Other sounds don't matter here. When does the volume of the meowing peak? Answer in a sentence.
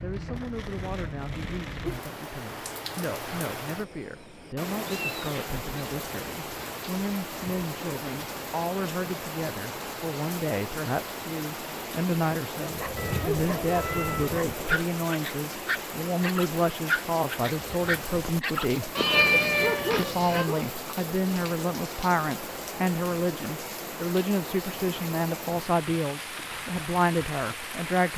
The volume of the meowing peaks at 19 seconds.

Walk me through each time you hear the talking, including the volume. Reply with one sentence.
You can hear the talking from 0.0 to 18.9 s, getting louder; and from 19.9 to 28.1 s, at a steady volume.